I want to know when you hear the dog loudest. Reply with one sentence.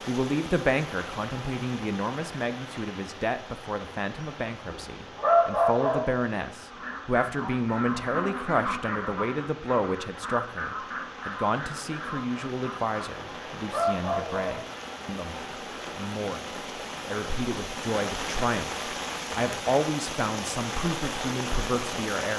The volume of the dog peaks at 5 seconds.